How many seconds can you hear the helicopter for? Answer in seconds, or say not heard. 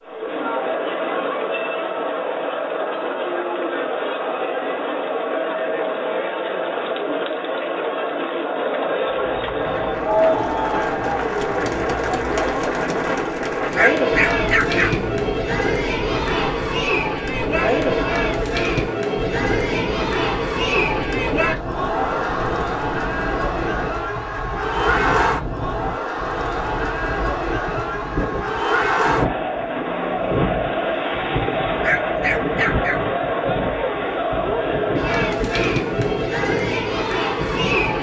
not heard.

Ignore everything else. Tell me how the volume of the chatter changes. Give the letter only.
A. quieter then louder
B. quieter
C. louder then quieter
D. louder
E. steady
E.